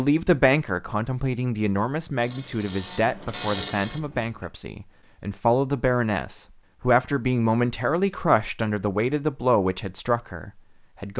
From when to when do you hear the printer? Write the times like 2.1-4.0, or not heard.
2.2-4.5.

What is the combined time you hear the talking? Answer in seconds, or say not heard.
11 s.